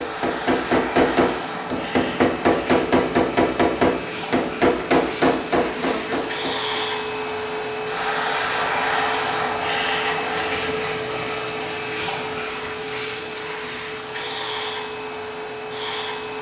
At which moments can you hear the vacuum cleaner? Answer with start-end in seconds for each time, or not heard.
0.0-16.3.